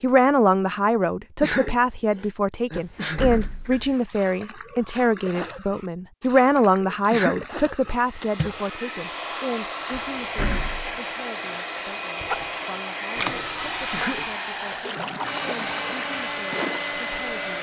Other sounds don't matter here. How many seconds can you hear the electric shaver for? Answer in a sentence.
The electric shaver can't be heard in this clip.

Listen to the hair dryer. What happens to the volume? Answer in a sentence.
The volume of the hair dryer stays about the same.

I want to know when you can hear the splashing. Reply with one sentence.
The splashing can be heard from 4.0 to 8.7 s and from 12.2 to 17.4 s.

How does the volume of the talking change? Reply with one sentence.
The loudness of the talking goes down.